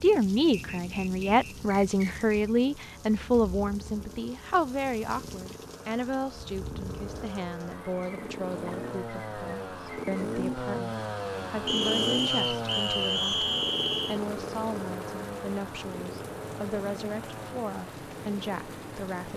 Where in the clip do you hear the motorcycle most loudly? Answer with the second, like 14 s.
12 s.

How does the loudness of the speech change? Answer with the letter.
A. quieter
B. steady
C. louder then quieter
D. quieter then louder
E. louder
A.